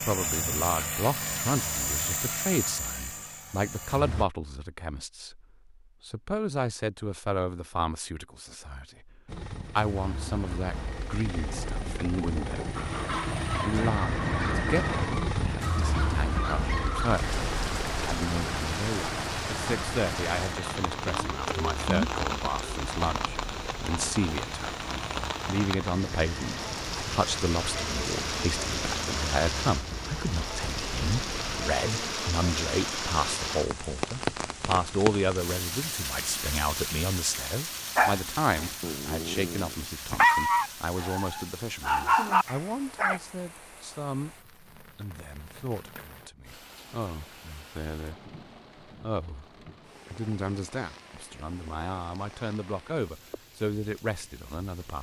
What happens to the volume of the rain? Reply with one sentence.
The volume of the rain goes down.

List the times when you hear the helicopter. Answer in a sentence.
You can hear the helicopter from 0.0 to 4.2 s and from 9.2 to 31.5 s.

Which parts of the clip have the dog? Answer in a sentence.
You can hear the dog from 12.8 to 17.2 s and from 38.0 to 43.2 s.